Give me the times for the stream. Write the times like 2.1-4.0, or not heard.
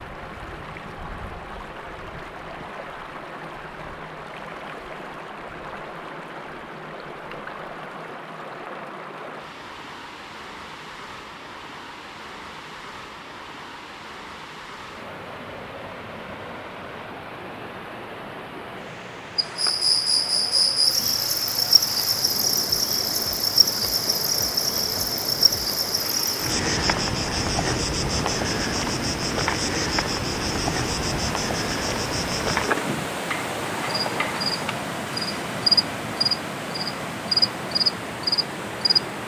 0.0-39.2.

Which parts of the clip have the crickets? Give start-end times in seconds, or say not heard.
19.4-39.0.